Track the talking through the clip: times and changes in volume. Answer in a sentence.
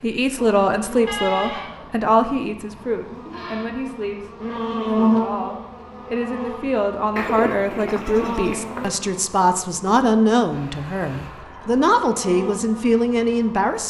The talking can be heard from 0.0 to 13.8 s, getting quieter then louder.